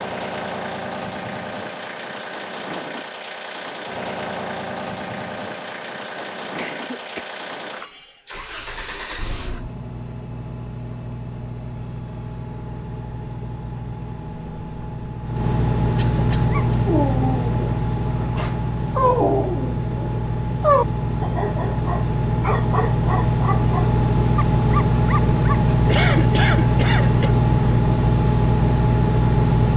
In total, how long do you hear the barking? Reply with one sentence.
You can hear the barking for 9 seconds altogether.